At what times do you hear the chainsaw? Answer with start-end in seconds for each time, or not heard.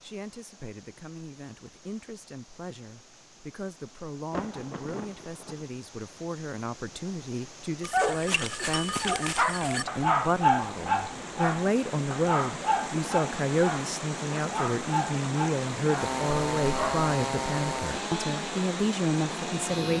15.9-19.9.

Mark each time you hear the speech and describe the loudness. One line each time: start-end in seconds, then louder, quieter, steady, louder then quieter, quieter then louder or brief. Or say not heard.
0.0-19.9 louder.